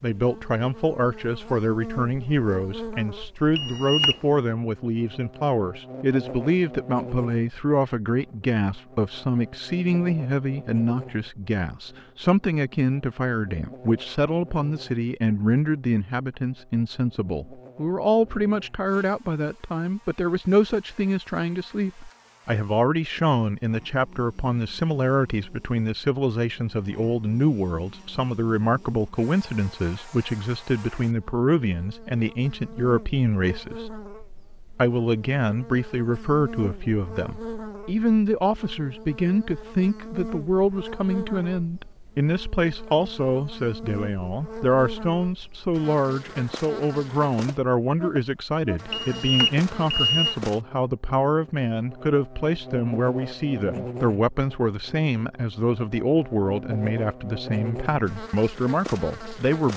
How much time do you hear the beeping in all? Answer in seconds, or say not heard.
2 s.